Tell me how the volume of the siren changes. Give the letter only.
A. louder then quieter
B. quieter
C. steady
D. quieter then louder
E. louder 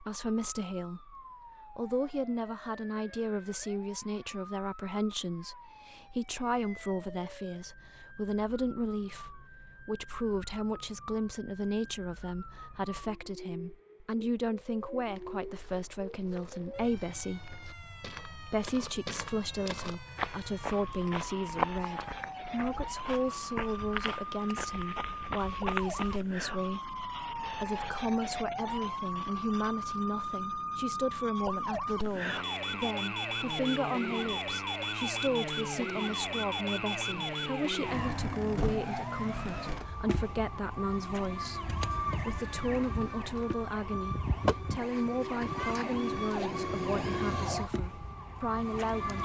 E.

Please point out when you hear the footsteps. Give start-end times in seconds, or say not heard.
15.1-26.2.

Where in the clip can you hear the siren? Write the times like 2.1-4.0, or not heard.
0.0-49.2.